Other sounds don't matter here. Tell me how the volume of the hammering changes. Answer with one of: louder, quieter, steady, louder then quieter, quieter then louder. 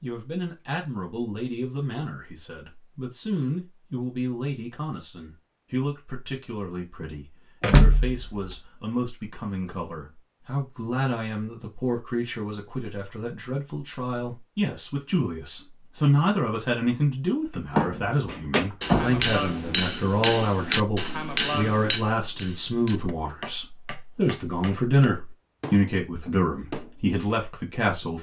quieter.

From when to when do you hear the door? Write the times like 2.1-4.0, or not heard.
7.6-8.6, 17.7-19.2.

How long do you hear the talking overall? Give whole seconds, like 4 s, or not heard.
28 s.